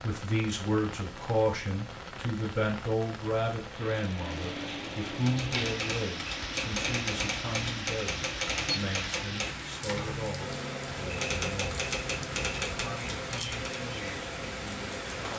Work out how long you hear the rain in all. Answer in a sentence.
The rain can be heard for 15 seconds in total.